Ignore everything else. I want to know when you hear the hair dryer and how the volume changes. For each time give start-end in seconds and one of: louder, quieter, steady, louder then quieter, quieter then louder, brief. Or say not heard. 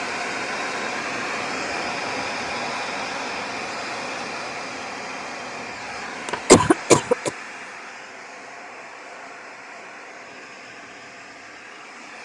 0.0-12.2 quieter.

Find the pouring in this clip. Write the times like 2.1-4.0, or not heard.
not heard.